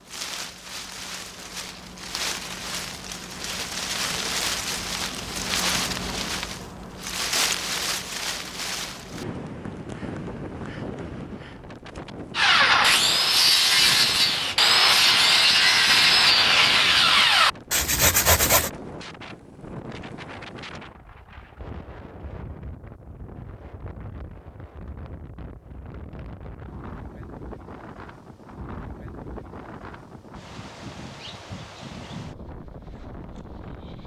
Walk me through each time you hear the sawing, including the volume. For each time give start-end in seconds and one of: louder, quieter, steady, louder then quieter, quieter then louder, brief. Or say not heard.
12.3-18.7 steady.